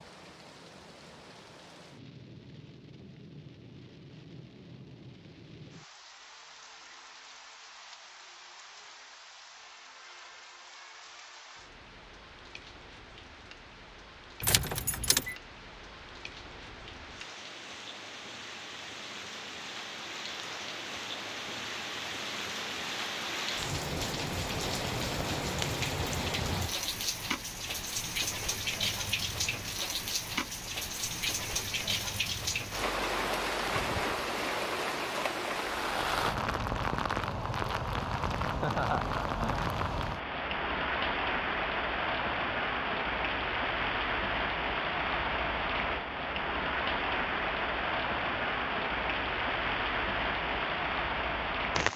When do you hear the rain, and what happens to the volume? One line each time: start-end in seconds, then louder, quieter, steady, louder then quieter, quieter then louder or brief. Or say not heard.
0.0-51.9 louder.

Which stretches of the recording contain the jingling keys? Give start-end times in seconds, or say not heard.
14.4-15.3.